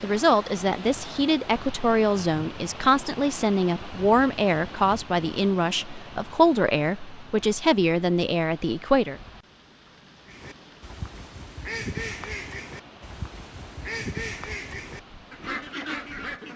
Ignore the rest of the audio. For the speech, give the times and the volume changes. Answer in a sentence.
The speech can be heard from 0.0 to 9.2 s, at a steady volume.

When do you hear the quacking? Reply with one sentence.
You can hear the quacking from 10.2 to 16.5 s.